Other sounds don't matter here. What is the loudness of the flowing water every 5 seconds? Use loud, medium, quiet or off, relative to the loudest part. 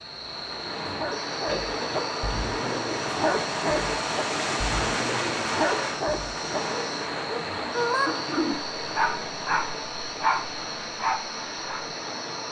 loud, loud, medium.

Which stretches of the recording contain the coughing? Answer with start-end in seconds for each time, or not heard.
1.4-2.0, 8.1-8.6.